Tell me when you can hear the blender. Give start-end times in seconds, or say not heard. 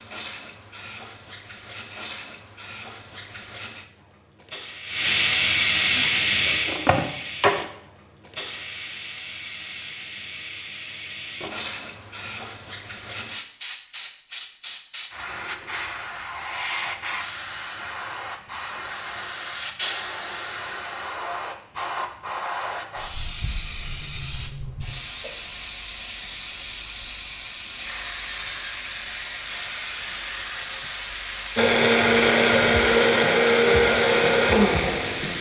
5.9-7.5, 31.6-35.3.